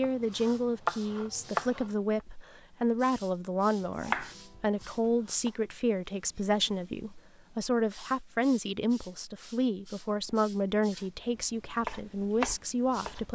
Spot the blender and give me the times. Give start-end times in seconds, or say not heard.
not heard.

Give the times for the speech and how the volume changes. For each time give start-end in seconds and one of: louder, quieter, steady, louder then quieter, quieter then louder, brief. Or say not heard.
0.0-13.2 steady.